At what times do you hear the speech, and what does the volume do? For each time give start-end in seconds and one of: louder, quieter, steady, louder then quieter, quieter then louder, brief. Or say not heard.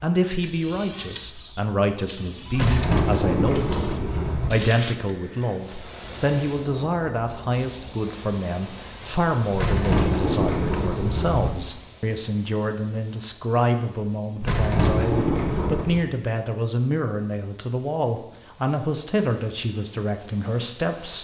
0.0-21.1 steady.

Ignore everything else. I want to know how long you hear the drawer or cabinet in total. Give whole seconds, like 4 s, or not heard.
6 s.